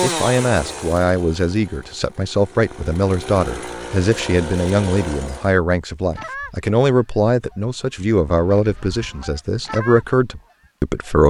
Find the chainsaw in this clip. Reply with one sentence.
The chainsaw can be heard from 0.0 to 5.5 s.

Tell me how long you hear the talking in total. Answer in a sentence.
The talking can be heard for 11 seconds in total.